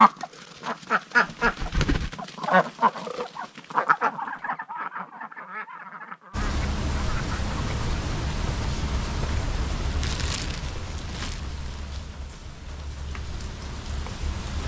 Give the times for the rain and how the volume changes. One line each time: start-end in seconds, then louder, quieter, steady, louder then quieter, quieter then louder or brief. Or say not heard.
6.3-14.6 quieter.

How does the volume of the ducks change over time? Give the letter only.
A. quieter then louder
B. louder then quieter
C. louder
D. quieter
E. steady
D.